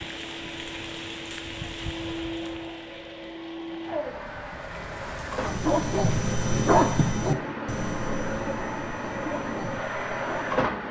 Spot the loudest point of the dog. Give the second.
7 s.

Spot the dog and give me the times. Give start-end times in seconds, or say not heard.
5.4-10.7.